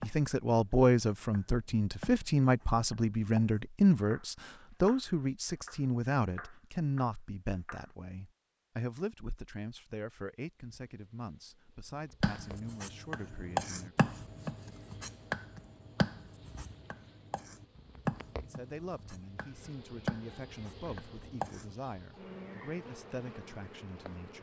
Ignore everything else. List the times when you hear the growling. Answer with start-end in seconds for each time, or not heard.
not heard.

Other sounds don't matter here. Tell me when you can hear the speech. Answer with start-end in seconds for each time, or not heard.
0.0-14.1, 18.3-24.3.